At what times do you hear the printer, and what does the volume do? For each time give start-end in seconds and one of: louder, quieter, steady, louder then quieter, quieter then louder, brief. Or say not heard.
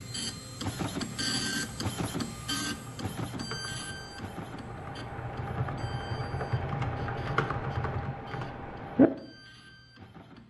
0.0-10.4 quieter.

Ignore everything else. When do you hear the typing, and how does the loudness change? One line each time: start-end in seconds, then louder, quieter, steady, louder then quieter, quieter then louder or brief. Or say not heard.
0.9-9.1 louder.